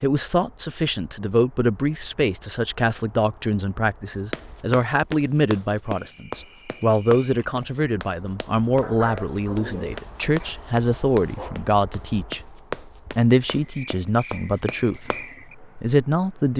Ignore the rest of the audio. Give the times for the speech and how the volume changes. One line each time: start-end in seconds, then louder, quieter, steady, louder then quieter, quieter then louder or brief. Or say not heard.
0.0-16.5 steady.